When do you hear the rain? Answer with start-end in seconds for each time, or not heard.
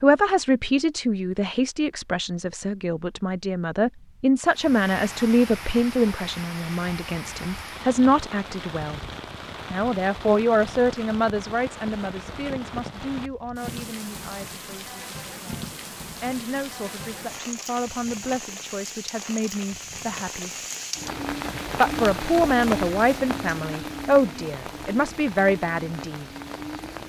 4.4-27.0.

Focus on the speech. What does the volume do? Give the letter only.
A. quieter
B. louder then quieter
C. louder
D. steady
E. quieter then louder
E.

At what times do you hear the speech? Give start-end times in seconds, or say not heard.
0.0-9.0, 9.7-20.6, 21.8-26.2.